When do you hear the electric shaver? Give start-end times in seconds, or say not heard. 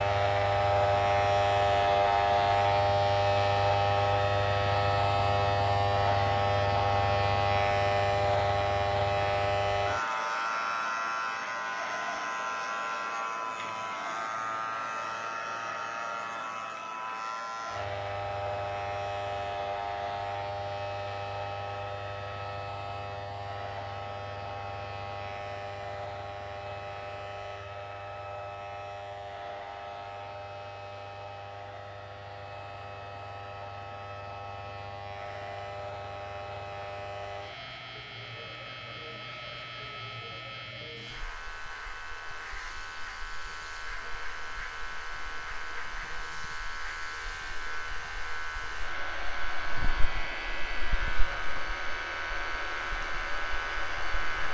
0.0-54.4.